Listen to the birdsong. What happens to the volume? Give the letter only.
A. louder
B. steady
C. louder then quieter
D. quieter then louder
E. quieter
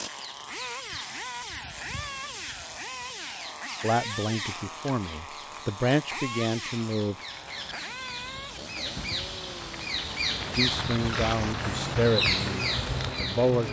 A.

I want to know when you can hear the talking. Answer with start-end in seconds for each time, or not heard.
3.8-7.2, 10.6-13.6.